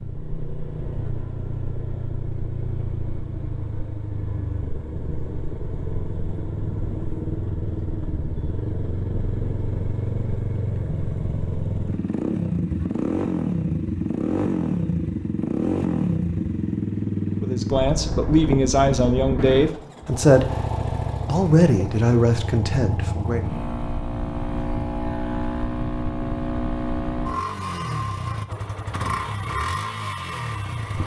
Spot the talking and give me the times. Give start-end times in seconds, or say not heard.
17.4-20.5, 21.2-23.5.